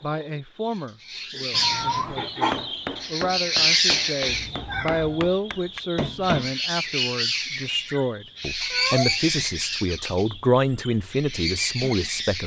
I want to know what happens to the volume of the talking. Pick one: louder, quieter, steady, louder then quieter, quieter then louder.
louder.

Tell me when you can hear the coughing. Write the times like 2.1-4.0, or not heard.
not heard.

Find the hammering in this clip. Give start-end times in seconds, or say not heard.
2.5-6.5.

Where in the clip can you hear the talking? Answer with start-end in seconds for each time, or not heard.
0.0-12.4.